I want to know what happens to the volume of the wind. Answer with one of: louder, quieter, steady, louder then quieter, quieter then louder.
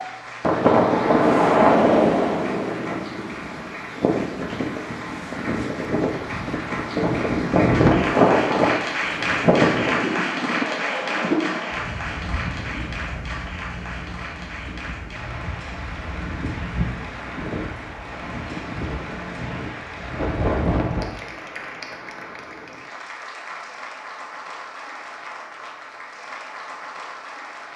quieter then louder.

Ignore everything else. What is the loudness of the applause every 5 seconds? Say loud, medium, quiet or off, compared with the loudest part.
medium, loud, loud, medium, medium, medium.